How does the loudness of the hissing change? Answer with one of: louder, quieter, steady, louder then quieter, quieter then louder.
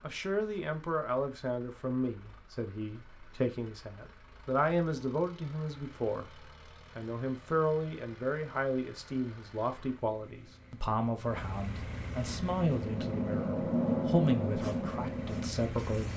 louder then quieter.